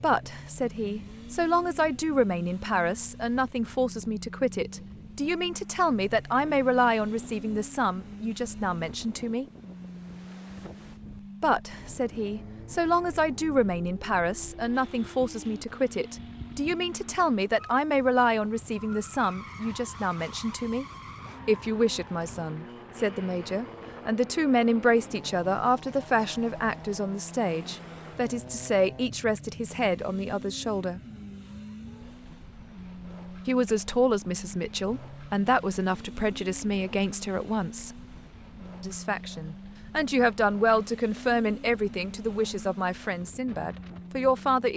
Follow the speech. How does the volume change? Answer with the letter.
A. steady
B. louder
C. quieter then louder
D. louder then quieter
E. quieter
A.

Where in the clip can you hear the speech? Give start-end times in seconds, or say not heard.
0.0-9.4, 11.4-20.9, 21.4-31.0, 33.5-37.9, 38.8-44.7.